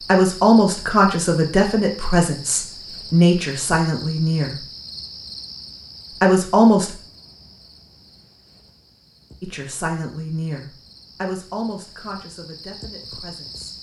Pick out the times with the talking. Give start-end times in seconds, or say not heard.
0.0-4.7, 6.2-7.0, 9.4-13.7.